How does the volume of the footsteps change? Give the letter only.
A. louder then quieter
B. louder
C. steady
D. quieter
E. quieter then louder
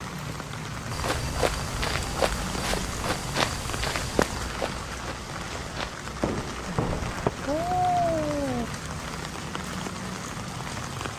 E.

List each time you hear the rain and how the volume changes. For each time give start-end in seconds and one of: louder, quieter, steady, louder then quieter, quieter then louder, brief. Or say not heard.
0.0-11.1 steady.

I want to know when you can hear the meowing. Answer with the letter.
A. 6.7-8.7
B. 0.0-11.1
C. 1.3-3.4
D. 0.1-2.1
A.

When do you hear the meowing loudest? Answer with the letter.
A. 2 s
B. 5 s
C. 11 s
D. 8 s
D.